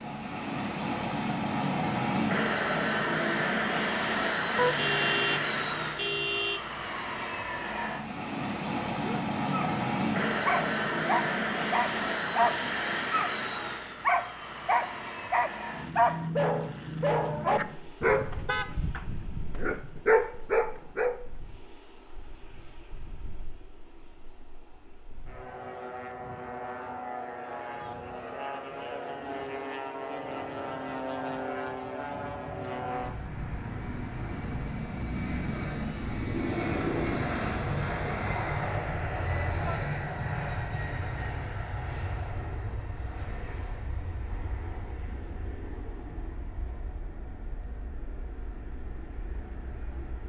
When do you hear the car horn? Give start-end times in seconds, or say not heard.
4.5-6.7, 18.1-18.9, 39.0-39.8.